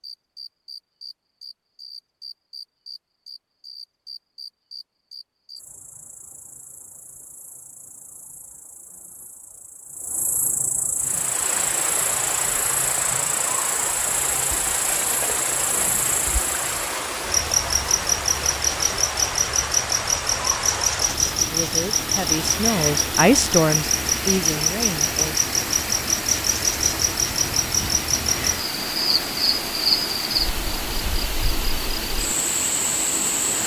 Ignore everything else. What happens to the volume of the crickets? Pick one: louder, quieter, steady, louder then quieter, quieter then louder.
louder.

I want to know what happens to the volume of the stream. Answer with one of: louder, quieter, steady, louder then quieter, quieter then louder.
steady.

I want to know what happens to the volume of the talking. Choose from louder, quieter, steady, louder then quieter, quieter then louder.
louder then quieter.